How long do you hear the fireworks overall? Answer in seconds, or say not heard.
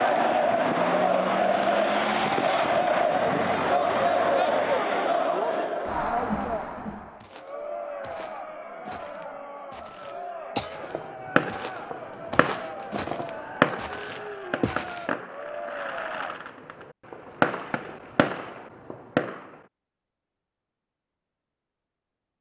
9 s.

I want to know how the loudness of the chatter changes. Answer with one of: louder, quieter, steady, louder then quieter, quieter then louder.
quieter.